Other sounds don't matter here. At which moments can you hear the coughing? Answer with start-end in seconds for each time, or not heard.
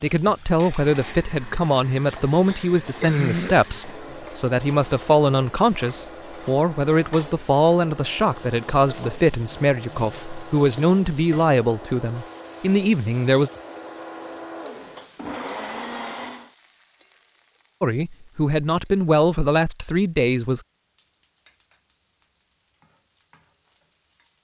2.5-3.6.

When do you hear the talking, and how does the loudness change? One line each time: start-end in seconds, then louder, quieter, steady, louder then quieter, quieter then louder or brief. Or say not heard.
0.0-13.5 steady
17.8-20.6 brief.